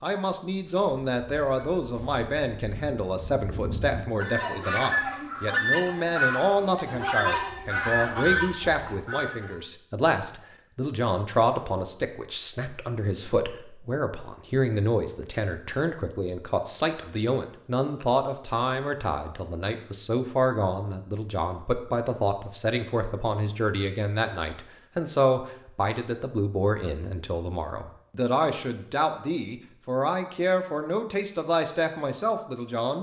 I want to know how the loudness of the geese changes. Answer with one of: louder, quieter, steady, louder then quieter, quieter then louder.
louder.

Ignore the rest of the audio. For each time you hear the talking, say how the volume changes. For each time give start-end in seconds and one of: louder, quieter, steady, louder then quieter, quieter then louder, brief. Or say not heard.
0.0-32.9 steady.